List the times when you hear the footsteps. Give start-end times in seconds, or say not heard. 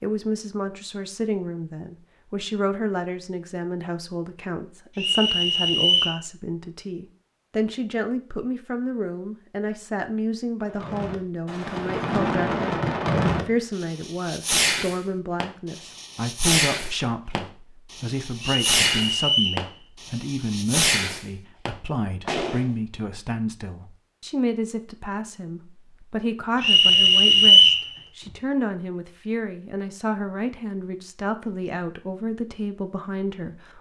not heard.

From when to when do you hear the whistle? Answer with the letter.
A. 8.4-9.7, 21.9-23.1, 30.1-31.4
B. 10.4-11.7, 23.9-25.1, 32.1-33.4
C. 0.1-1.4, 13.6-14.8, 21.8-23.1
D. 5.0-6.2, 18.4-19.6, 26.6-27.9
D.